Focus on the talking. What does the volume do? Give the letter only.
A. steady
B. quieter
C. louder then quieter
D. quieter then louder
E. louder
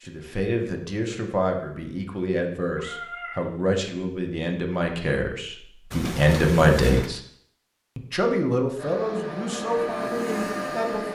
C.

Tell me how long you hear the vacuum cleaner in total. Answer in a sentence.
The vacuum cleaner can be heard for 2 seconds in total.